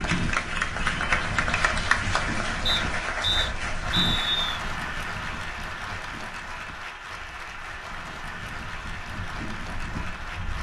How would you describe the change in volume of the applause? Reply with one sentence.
The loudness of the applause goes down.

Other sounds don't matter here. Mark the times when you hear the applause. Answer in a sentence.
The applause can be heard from 0.0 to 10.5 s.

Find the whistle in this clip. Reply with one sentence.
The whistle can be heard from 2.6 to 4.6 s.